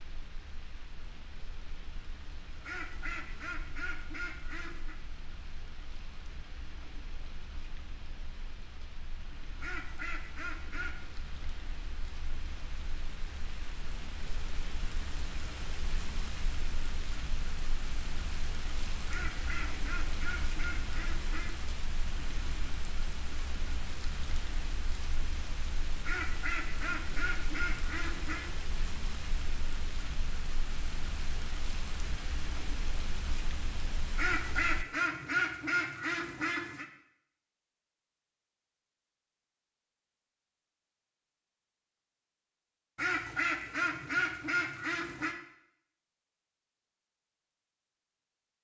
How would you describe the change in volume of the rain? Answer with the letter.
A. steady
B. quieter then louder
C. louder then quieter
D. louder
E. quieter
D.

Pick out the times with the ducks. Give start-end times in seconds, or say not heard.
2.6-5.0, 9.6-11.0, 19.1-21.6, 26.1-28.5, 34.1-36.9, 43.0-45.4.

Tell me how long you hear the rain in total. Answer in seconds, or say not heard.
35 s.